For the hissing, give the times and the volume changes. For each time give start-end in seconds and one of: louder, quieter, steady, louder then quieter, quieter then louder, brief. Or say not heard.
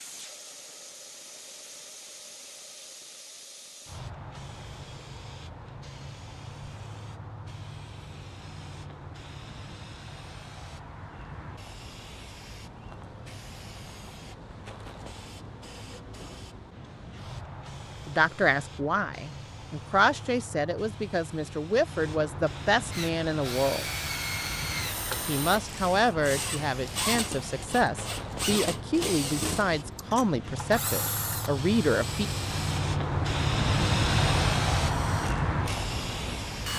0.0-36.7 louder.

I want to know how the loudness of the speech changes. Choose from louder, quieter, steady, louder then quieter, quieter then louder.
steady.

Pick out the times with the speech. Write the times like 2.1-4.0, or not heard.
18.1-23.9, 25.2-32.2.